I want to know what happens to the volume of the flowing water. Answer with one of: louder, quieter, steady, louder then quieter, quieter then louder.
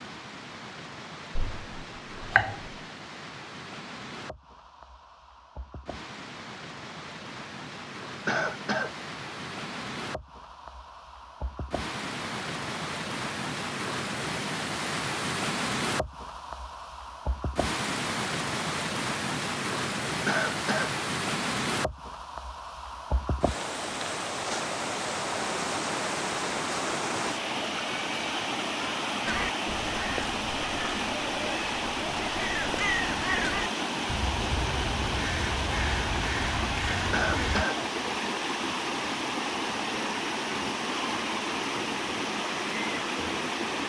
louder.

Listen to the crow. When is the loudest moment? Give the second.
33 s.